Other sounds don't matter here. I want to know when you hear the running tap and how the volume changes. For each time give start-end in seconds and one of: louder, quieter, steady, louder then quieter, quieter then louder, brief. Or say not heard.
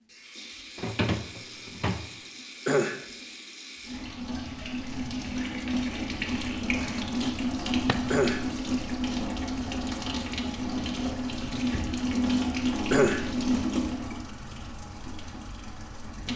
0.1-16.3 louder.